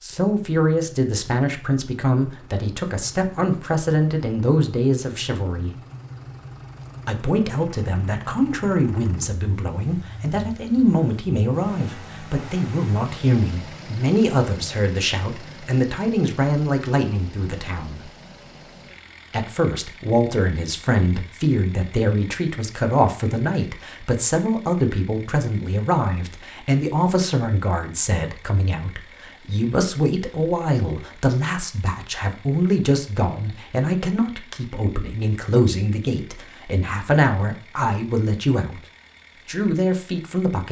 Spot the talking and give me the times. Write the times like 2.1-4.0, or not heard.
0.0-5.7, 7.0-18.0, 19.3-38.8, 39.5-40.6.